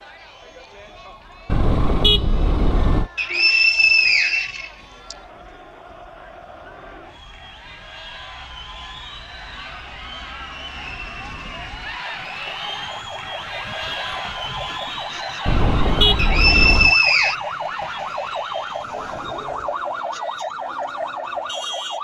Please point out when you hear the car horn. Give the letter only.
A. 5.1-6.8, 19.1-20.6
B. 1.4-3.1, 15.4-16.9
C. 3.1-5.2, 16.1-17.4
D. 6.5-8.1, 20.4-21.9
B.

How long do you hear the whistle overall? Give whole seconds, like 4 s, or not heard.
3 s.